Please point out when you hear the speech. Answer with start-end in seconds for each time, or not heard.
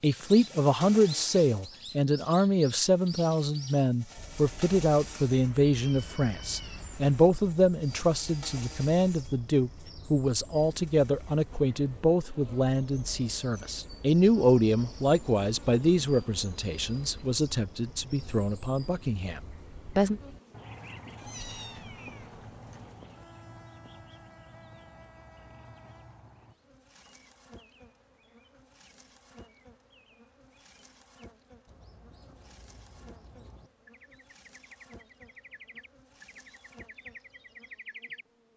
0.0-20.2.